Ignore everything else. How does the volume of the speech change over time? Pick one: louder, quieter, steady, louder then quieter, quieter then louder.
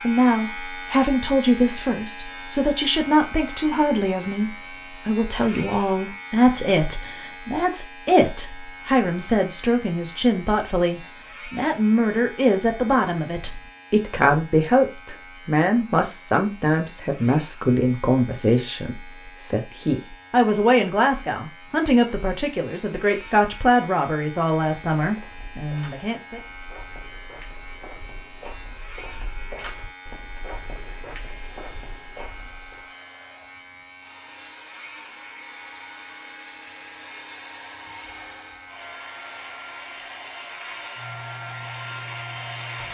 steady.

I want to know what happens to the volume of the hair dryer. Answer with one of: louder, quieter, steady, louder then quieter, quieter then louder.
louder.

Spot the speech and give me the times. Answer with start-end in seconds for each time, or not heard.
0.0-26.4.